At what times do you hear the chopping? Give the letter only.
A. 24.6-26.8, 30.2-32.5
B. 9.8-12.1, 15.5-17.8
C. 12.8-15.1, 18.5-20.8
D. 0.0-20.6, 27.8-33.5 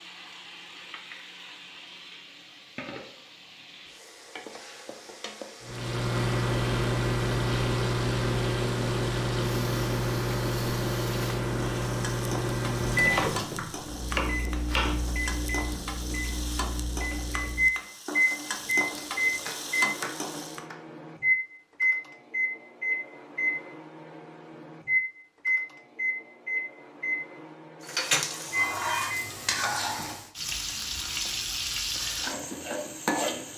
C.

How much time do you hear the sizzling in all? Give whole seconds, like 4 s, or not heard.
26 s.